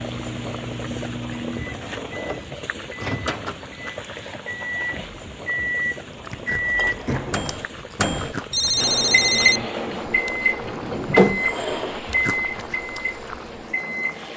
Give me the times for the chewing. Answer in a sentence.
You can hear the chewing from 6.1 to 8.9 s and from 11.2 to 13.0 s.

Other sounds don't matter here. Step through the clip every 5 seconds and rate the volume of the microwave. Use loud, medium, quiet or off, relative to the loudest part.
medium, loud, loud.